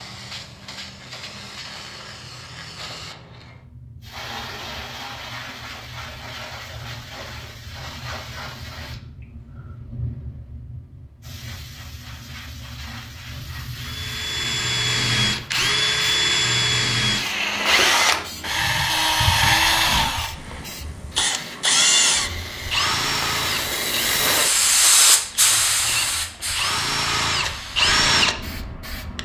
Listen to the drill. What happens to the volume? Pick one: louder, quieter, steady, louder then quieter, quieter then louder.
quieter then louder.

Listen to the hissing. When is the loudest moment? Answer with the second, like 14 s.
25 s.